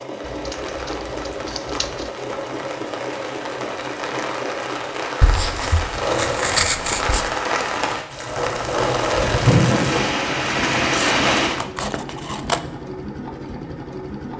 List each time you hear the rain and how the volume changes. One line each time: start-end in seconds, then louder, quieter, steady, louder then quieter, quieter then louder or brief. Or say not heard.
0.0-11.6 louder.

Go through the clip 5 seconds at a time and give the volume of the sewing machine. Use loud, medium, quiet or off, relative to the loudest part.
medium, loud, medium.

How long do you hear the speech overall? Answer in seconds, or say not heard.
not heard.